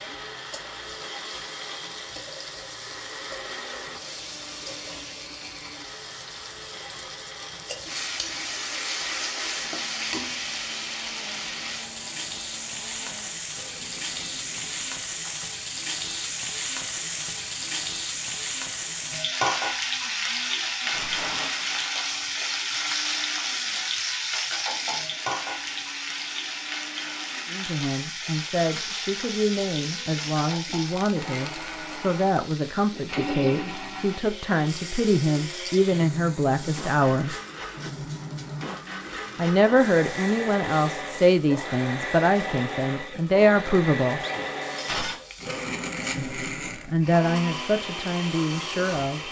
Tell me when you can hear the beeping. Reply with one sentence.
You can't hear the beeping here.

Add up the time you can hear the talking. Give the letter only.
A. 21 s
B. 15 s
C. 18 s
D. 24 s
C.